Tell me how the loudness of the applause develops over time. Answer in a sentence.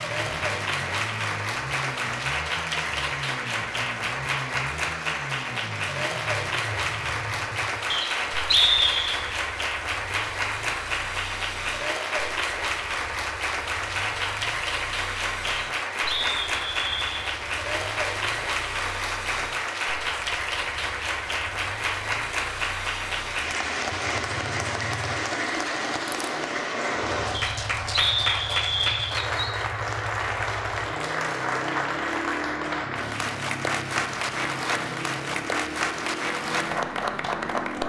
The loudness of the applause stays about the same.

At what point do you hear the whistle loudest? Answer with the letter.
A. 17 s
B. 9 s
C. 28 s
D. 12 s
B.